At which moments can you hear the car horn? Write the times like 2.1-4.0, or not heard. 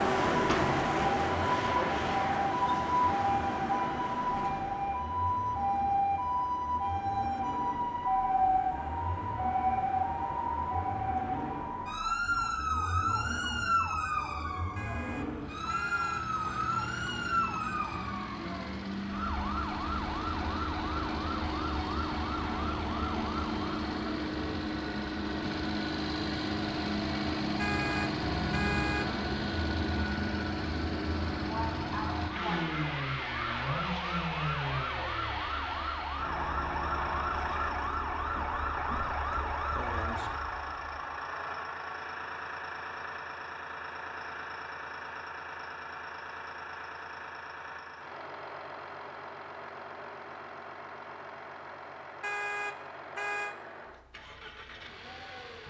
14.8-16.2, 27.6-29.1, 52.2-53.5.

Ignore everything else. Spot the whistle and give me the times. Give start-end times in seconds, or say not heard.
not heard.